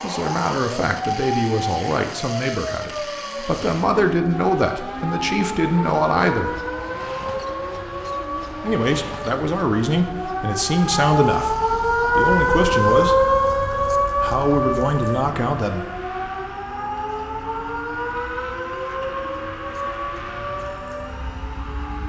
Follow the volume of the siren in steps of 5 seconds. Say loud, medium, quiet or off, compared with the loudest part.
medium, medium, loud, medium, quiet.